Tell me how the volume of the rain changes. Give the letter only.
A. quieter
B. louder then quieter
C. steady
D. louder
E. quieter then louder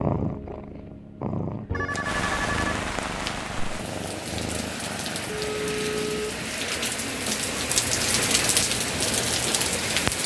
D.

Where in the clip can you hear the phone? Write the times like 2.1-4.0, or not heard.
1.7-3.3, 5.3-6.3.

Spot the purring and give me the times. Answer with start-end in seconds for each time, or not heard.
0.0-6.5.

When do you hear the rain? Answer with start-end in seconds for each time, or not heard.
2.0-10.2.